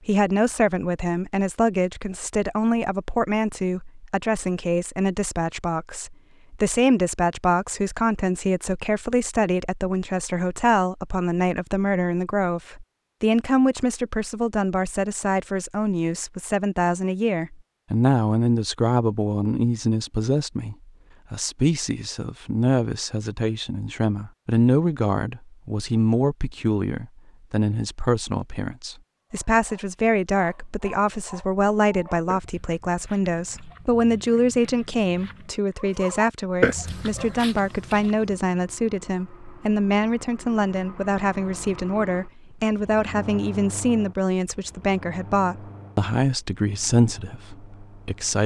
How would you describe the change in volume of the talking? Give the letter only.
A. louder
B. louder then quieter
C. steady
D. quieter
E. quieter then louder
C.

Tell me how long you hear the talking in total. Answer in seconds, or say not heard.
48 s.